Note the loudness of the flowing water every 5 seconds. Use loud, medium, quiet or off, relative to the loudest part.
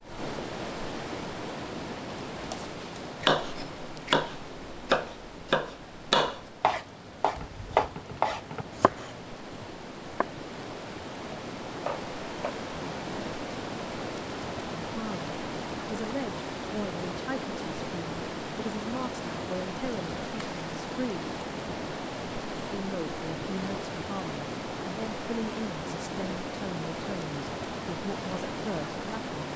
loud, medium, loud, loud, loud, loud.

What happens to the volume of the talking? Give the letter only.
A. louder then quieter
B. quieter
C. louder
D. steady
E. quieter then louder
D.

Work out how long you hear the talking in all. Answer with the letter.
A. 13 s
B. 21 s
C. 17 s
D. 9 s
A.